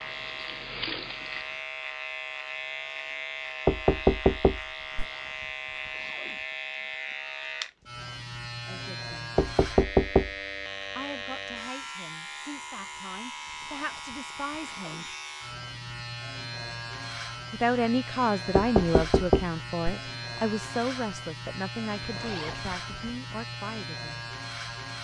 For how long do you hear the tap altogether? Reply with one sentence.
The tap can be heard for 2 seconds in total.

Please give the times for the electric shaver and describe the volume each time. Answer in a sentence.
The electric shaver can be heard from 0.0 to 24.9 s, at a steady volume.